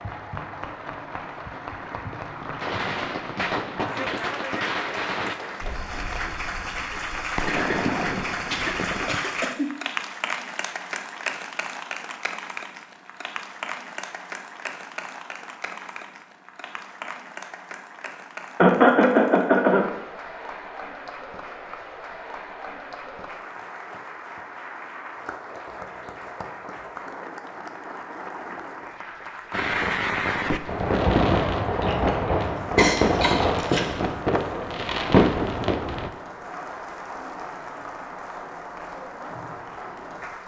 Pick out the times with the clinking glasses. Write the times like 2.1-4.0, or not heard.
not heard.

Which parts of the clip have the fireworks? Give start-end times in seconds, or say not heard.
2.6-9.2, 29.5-36.1.